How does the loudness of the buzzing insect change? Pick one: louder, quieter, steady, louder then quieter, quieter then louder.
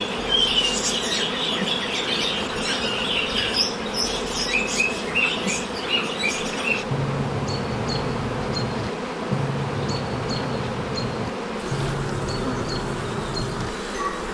steady.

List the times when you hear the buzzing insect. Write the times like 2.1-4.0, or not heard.
0.0-14.2.